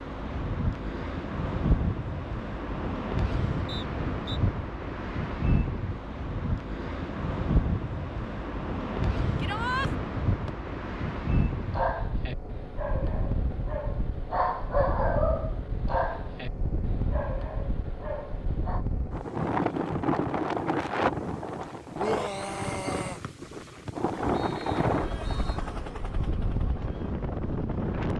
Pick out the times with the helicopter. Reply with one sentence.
You can hear the helicopter from 24.1 to 27.9 s.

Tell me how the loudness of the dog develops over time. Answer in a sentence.
The loudness of the dog goes up, then down.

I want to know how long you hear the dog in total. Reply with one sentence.
The dog can be heard for 7 seconds in total.